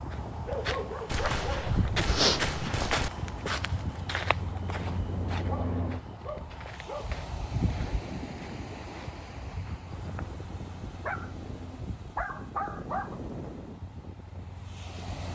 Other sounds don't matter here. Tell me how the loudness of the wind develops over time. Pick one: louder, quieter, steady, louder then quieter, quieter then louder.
steady.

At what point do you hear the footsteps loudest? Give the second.
2 s.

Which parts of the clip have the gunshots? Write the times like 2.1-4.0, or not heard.
1.1-3.1.